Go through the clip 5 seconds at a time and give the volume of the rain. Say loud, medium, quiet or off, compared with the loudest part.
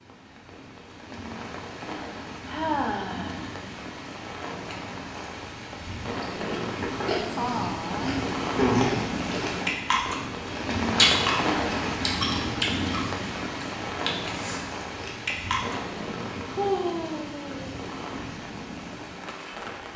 medium, loud, loud, medium.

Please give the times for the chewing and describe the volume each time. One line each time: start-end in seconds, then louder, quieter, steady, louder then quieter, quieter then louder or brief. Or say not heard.
6.2-15.8 louder then quieter.